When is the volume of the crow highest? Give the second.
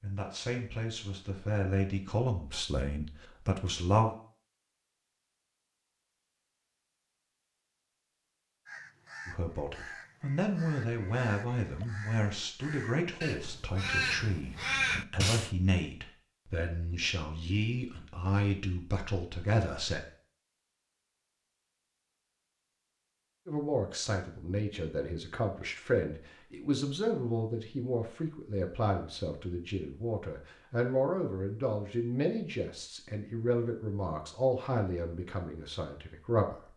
15 s.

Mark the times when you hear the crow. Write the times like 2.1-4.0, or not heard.
8.7-15.5.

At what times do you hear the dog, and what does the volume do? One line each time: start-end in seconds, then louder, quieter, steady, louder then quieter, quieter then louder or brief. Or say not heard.
not heard.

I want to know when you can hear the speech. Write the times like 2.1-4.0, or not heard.
0.0-4.2, 9.2-20.0, 23.4-36.7.